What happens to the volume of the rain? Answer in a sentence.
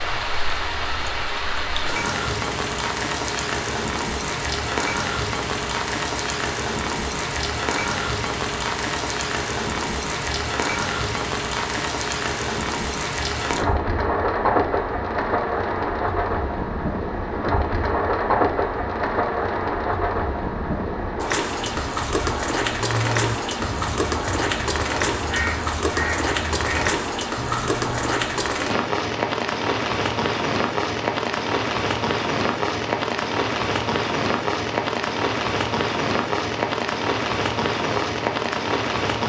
The volume of the rain stays about the same.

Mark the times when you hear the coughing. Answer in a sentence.
You can't hear the coughing here.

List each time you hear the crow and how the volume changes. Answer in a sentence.
You can hear the crow from 21.6 to 28.5 s, at a steady volume.